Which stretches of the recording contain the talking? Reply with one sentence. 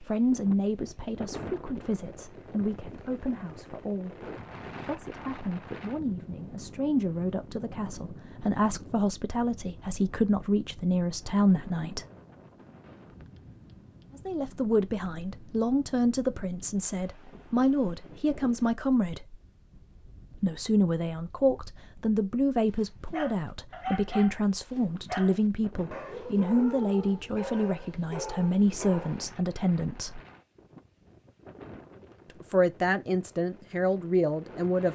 You can hear the talking from 0.0 to 12.1 s, from 14.2 to 19.4 s, from 20.3 to 30.2 s and from 32.4 to 34.8 s.